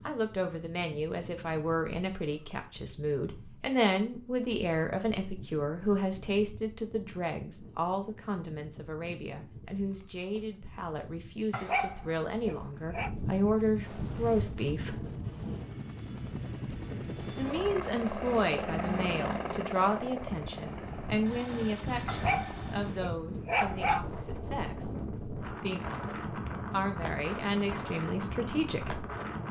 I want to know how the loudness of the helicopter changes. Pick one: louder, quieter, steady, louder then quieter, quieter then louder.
louder then quieter.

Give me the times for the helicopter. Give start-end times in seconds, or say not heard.
13.8-23.1.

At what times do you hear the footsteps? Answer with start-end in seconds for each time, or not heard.
not heard.